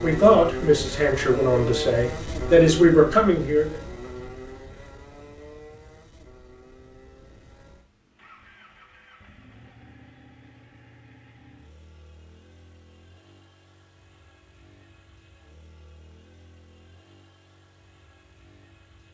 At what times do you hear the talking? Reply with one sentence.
The talking can be heard from 0.0 to 3.8 s.